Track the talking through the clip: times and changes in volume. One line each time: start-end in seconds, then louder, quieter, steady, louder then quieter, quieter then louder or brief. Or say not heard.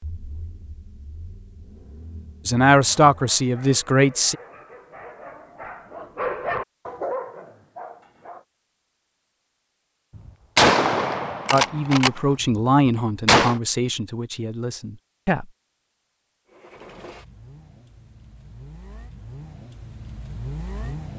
2.5-4.3 brief
11.5-15.5 quieter.